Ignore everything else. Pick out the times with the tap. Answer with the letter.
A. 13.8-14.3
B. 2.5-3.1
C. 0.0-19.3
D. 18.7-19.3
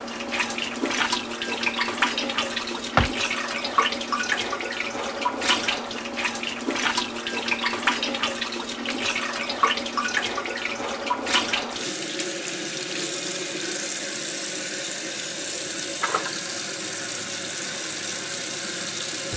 C.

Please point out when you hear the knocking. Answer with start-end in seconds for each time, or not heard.
2.5-3.1.